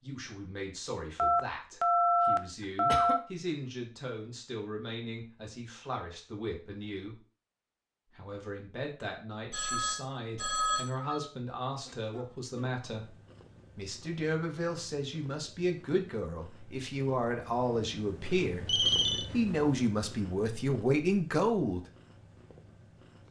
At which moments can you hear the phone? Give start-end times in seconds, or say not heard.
1.1-3.2, 9.5-11.2, 18.6-19.3.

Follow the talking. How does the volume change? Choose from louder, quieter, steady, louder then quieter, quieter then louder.
louder.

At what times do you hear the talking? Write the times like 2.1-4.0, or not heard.
0.0-7.2, 8.2-13.2, 13.8-21.8.